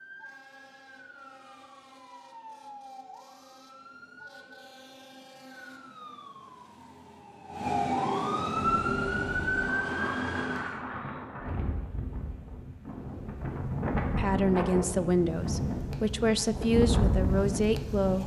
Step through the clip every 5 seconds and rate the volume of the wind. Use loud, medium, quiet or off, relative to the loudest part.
off, medium, loud, loud.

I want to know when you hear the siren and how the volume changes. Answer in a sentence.
You can hear the siren from 0.0 to 10.8 s, getting louder.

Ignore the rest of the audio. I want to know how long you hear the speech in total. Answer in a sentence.
The speech can be heard for 4 seconds in total.